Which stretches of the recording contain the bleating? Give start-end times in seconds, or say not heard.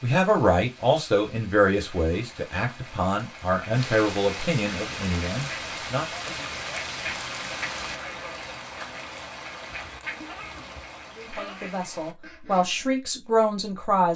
9.7-11.8.